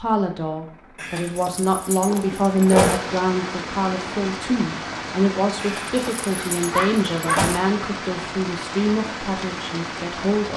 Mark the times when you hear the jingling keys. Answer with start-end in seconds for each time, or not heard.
0.9-3.0, 5.5-7.6.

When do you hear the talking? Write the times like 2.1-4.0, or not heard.
0.0-10.5.